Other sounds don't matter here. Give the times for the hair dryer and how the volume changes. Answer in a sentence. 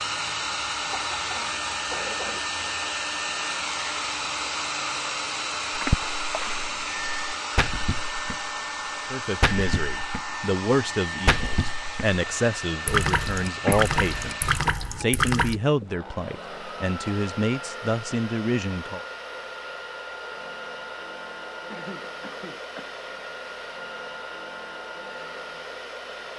You can hear the hair dryer from 0.0 to 26.3 s, getting quieter.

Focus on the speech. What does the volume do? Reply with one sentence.
The volume of the speech stays about the same.